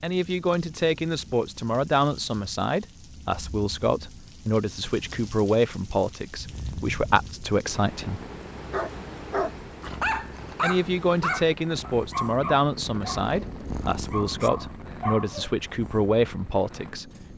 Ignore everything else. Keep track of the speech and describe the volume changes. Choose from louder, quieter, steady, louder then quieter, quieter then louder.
steady.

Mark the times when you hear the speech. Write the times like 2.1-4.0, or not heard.
0.0-8.2, 10.6-17.1.